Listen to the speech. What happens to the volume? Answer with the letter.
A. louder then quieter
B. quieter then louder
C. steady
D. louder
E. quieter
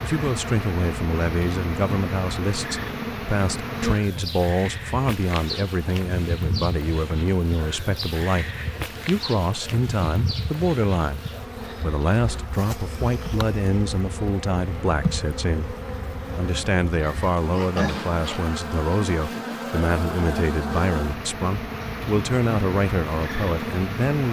C.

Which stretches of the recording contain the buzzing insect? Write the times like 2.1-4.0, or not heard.
0.0-24.2.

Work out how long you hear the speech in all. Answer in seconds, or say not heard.
24 s.